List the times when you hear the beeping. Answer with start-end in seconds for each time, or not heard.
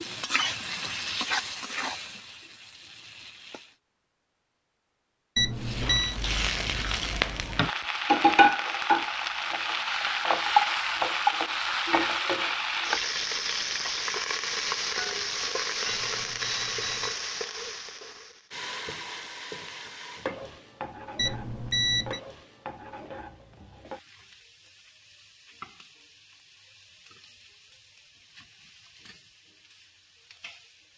5.3-6.2, 15.8-17.2, 21.1-22.2.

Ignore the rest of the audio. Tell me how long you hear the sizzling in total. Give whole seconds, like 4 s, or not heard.
29 s.